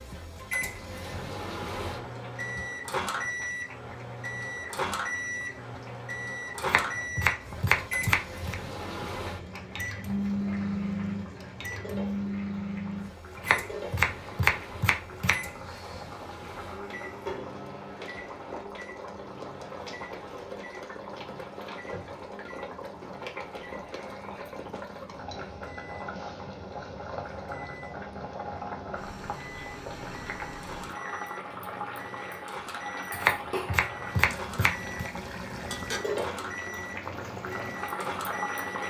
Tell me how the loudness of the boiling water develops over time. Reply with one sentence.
The volume of the boiling water goes up.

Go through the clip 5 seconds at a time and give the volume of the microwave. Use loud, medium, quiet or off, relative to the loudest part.
loud, loud, loud, medium, quiet, quiet, medium, medium.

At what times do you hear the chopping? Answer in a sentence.
You can hear the chopping from 6.6 to 8.6 s, from 13.3 to 15.5 s and from 33.1 to 35.1 s.